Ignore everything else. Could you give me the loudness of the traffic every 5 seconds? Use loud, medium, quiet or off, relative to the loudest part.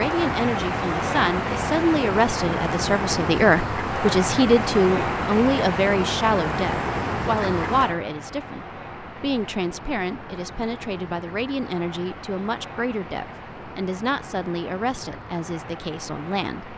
loud, loud, quiet, quiet.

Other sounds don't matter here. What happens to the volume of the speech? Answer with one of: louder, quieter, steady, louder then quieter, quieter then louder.
quieter.